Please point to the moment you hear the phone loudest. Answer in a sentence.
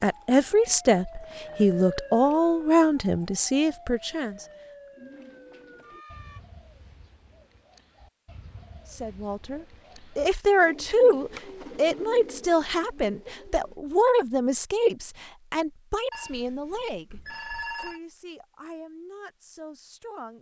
The volume of the phone peaks at 18 seconds.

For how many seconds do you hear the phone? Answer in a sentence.
You can hear the phone for 2 seconds altogether.